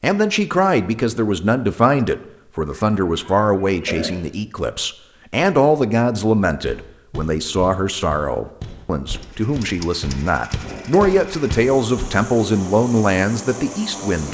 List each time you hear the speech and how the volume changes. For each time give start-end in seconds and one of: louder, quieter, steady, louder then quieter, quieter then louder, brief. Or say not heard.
0.0-14.2 steady.